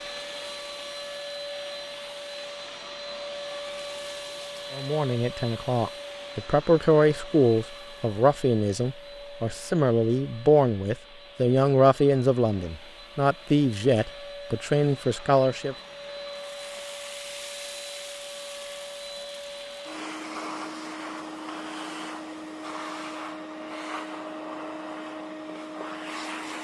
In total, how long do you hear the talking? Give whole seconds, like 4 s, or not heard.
11 s.